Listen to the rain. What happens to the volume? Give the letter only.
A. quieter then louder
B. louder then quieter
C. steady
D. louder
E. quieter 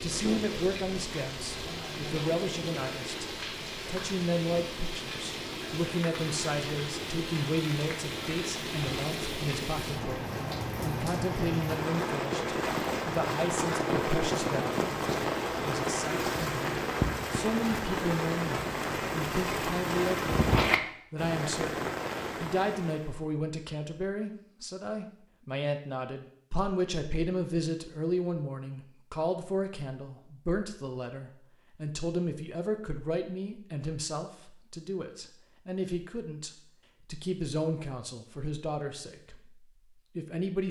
D.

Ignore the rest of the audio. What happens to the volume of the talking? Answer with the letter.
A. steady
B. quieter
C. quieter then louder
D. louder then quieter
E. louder
A.